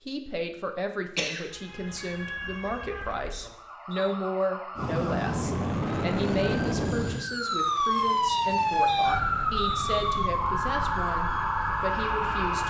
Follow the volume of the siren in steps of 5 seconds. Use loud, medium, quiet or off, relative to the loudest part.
quiet, loud, loud.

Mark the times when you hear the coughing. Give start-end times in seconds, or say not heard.
1.1-2.0.